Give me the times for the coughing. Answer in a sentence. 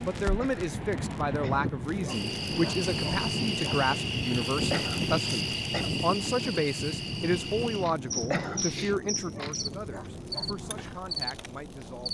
You can hear the coughing from 0.3 to 1.7 s, from 4.7 to 5.9 s and from 8.3 to 8.8 s.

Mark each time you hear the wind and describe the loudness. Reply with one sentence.
The wind can be heard from 0.0 to 12.1 s, getting quieter.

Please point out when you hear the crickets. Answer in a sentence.
The crickets can be heard from 2.0 to 12.1 s.